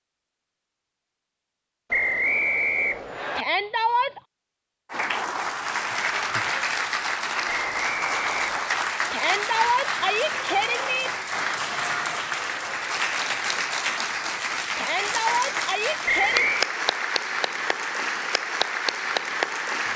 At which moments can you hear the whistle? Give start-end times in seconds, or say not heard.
1.9-3.5, 7.5-8.7, 16.1-16.6.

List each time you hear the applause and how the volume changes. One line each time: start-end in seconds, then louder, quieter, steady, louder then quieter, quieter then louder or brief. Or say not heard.
4.9-19.9 steady.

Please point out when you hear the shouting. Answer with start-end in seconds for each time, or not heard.
3.4-4.2, 9.1-11.1, 14.8-16.5.